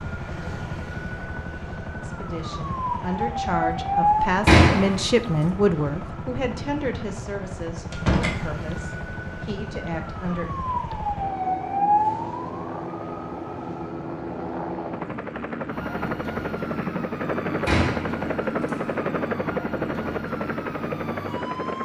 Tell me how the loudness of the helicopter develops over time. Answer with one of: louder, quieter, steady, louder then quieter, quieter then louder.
louder.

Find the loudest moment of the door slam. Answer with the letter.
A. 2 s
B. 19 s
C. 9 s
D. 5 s
D.